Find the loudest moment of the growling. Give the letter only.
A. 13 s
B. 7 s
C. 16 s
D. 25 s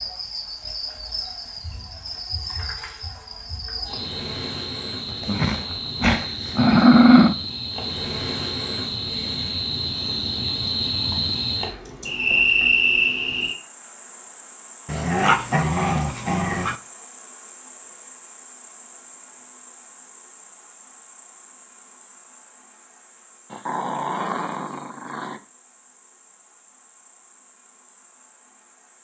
B.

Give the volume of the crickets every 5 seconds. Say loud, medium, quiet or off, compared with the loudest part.
medium, medium, loud, quiet, quiet, quiet.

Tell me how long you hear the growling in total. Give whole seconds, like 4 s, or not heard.
6 s.